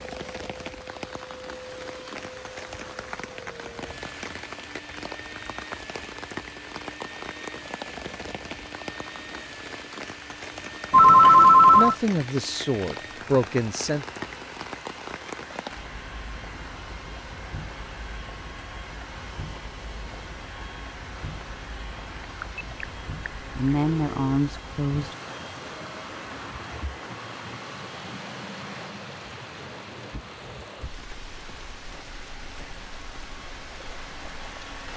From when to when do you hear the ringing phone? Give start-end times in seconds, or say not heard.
10.9-11.9, 22.1-24.4.